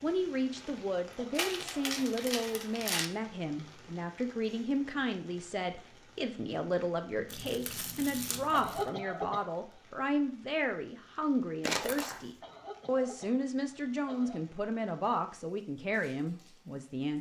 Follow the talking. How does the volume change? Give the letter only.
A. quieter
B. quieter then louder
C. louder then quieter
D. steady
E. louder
D.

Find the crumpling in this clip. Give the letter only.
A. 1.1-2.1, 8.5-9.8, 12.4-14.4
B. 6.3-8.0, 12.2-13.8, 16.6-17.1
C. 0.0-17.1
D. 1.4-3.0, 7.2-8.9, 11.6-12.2
D.